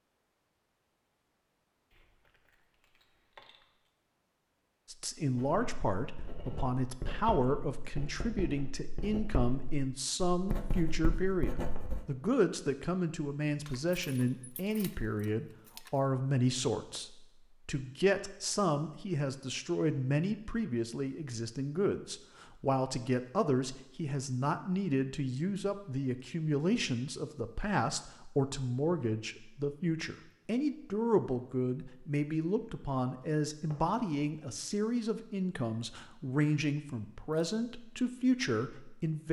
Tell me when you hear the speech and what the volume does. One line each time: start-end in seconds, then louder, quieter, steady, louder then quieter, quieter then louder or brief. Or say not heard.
4.9-39.2 steady.